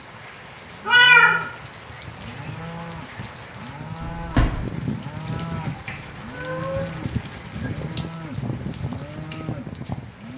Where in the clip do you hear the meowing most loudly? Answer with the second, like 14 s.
1 s.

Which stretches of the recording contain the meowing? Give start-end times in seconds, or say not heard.
0.8-1.4, 5.6-7.3.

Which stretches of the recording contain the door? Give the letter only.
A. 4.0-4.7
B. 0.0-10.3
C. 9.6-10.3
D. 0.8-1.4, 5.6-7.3
A.